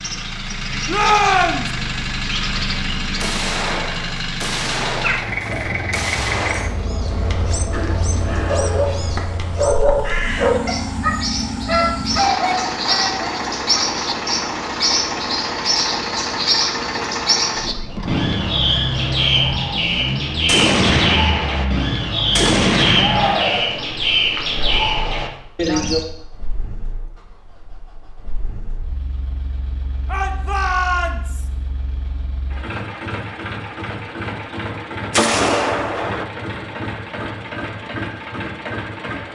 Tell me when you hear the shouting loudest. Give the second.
1 s.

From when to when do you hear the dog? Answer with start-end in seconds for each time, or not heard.
8.3-13.8.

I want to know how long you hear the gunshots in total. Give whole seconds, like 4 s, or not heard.
8 s.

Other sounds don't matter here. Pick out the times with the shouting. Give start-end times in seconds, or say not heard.
0.8-1.7, 22.9-23.9, 30.1-31.4.